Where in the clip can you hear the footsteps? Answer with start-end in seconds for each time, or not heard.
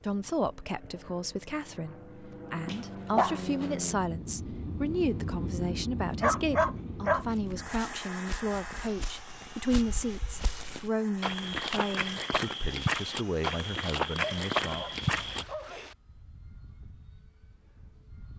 7.2-15.4.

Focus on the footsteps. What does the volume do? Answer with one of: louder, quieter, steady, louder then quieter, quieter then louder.
louder.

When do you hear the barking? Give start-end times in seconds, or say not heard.
2.6-3.6, 6.2-7.2, 14.2-15.9.